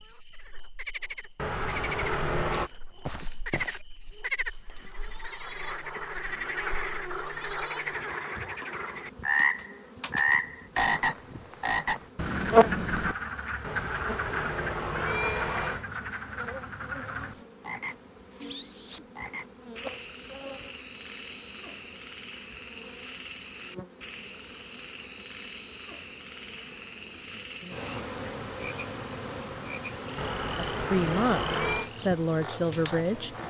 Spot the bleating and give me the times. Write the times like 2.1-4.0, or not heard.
2.5-7.9.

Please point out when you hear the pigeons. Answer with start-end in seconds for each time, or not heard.
not heard.